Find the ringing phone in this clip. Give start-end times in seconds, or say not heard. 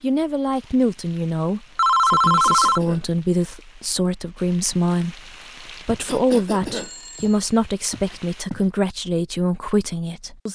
1.8-2.8, 6.8-8.2.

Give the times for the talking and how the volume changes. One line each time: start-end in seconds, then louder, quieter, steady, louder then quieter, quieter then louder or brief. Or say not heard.
0.0-10.5 steady.